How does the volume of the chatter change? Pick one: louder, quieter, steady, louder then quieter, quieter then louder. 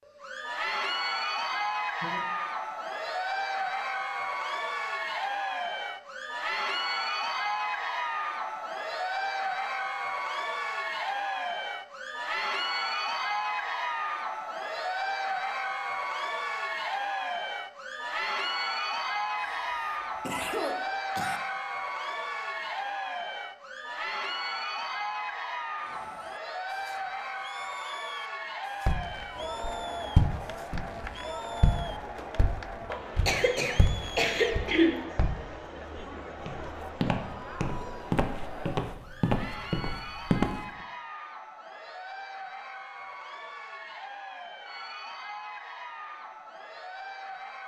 quieter.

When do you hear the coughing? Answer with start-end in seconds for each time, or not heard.
1.5-2.2, 19.4-21.4, 32.9-35.0.